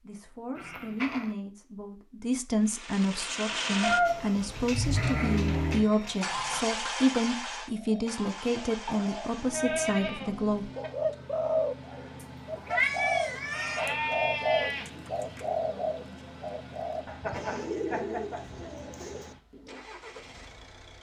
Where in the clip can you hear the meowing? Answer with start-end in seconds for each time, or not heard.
3.8-4.7, 12.2-13.9.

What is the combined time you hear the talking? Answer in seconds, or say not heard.
11 s.